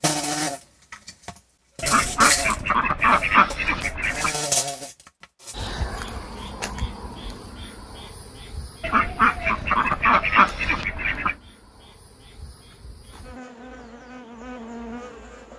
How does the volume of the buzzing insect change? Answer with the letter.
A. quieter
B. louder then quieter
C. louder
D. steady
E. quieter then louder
E.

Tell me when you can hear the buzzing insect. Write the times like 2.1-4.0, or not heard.
0.0-15.5.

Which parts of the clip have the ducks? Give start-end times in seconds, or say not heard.
1.8-4.3, 8.8-11.3.